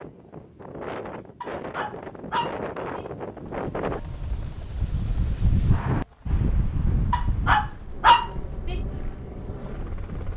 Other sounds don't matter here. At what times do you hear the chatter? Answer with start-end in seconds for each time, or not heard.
not heard.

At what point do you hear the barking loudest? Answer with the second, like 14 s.
8 s.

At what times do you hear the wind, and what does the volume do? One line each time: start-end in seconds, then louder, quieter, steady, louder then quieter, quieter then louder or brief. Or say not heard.
0.0-10.3 louder then quieter.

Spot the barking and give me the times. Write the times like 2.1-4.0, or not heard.
1.4-3.0, 7.1-8.8.